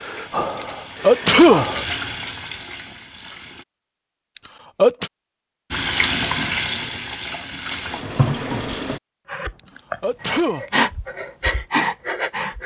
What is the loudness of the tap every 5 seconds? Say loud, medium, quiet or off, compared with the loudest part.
medium, loud, off.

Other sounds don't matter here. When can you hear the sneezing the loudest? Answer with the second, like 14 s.
1 s.